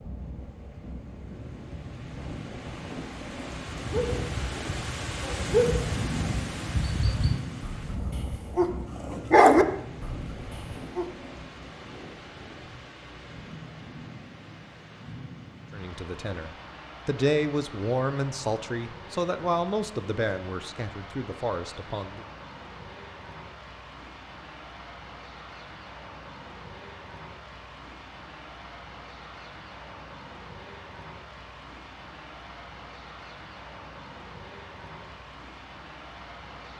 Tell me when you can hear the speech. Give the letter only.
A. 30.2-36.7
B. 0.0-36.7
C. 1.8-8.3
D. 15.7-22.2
D.